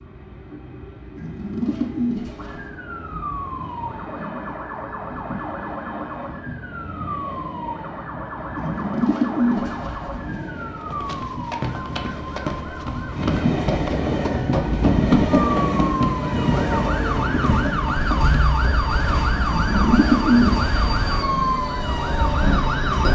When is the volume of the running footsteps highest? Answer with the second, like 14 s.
15 s.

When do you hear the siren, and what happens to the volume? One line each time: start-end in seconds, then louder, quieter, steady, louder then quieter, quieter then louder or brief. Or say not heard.
2.4-23.1 louder.